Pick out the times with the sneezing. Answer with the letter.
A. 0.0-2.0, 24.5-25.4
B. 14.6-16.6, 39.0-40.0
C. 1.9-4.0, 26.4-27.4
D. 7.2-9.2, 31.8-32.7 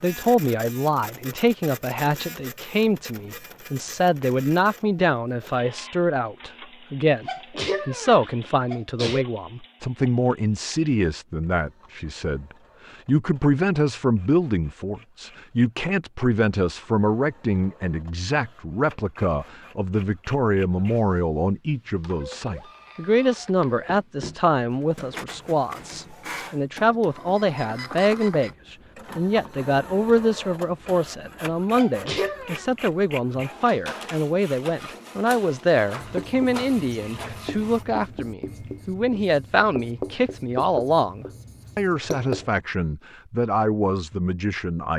D.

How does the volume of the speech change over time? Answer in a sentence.
The volume of the speech stays about the same.